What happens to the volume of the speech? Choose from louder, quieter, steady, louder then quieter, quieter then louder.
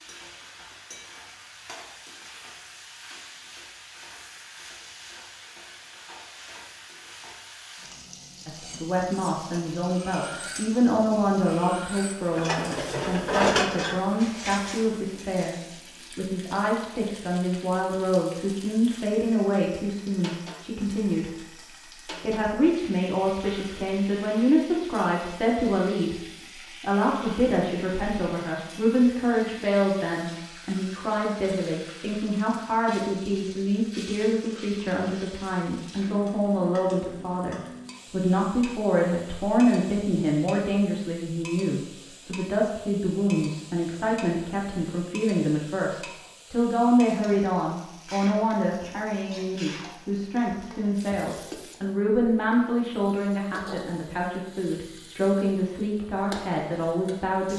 steady.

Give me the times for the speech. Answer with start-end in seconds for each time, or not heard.
8.4-15.6, 16.1-21.3, 22.1-57.5.